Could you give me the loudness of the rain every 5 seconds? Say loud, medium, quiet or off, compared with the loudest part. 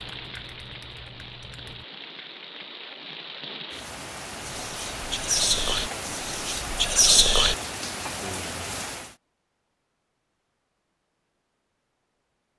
medium, loud, off.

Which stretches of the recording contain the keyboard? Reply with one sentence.
The keyboard can be heard from 0.0 to 1.9 s.